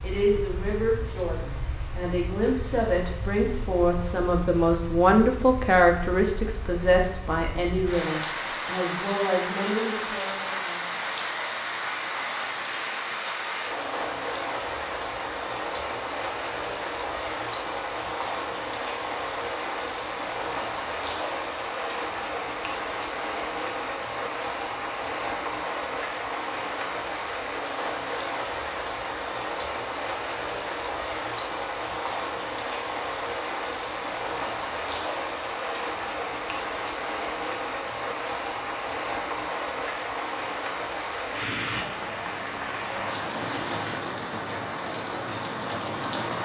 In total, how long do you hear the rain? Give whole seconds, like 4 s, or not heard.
46 s.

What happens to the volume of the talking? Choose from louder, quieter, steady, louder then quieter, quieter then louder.
louder then quieter.